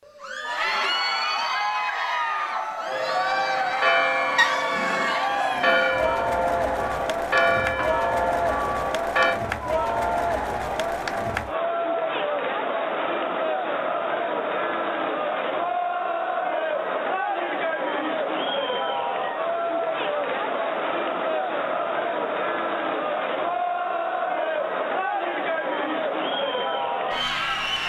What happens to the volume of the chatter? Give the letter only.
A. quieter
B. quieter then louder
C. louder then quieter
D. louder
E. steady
E.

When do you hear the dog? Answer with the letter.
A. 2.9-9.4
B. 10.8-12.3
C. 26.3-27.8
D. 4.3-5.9
D.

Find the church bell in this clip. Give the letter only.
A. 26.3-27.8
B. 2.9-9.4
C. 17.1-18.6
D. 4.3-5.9
B.